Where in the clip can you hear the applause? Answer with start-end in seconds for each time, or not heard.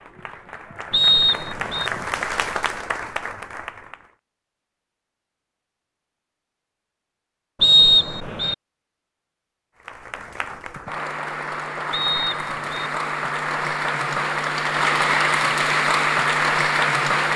0.0-4.1, 9.8-17.3.